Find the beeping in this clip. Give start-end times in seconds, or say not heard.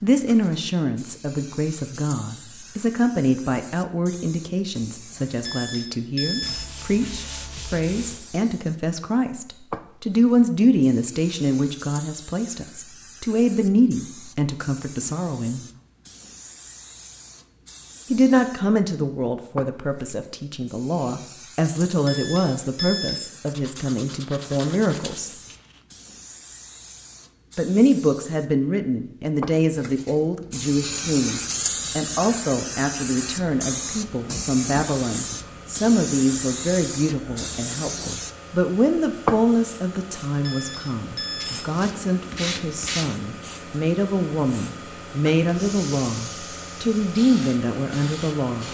5.5-6.5, 22.1-23.1, 40.5-41.5.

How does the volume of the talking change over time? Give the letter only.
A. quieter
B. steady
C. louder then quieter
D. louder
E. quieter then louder
B.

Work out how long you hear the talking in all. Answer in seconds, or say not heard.
44 s.